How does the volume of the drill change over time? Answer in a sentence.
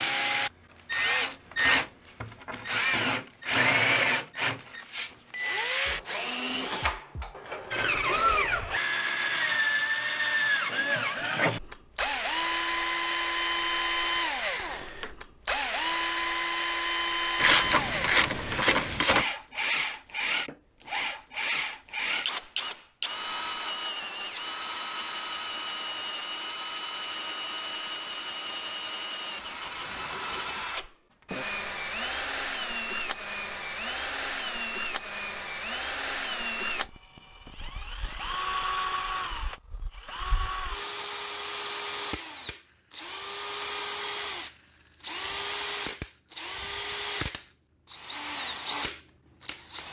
The loudness of the drill goes down.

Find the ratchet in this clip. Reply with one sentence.
The ratchet can be heard from 17.4 to 19.2 s.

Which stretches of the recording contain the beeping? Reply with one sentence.
You can't hear the beeping here.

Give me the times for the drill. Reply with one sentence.
You can hear the drill from 0.0 to 49.8 s.